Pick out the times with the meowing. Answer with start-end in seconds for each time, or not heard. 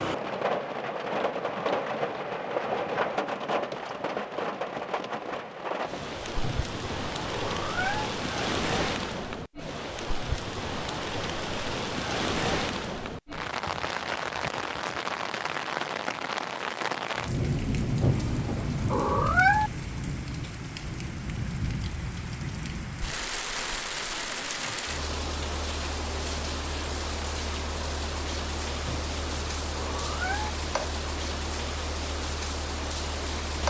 6.4-8.1, 18.0-19.7, 28.9-30.5.